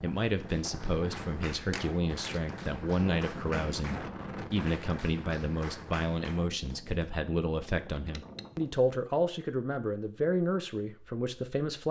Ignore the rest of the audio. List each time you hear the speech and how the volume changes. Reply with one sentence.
The speech can be heard from 0.0 to 11.8 s, at a steady volume.